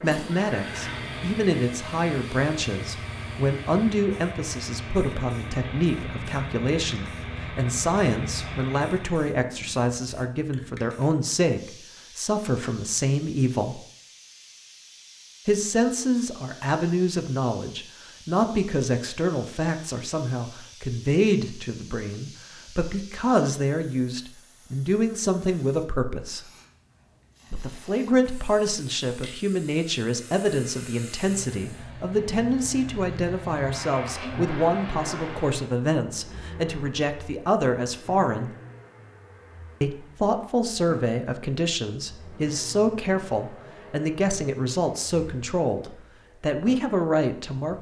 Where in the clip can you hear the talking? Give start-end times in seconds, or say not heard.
0.0-13.8, 15.4-26.5, 27.5-38.5, 39.8-47.7.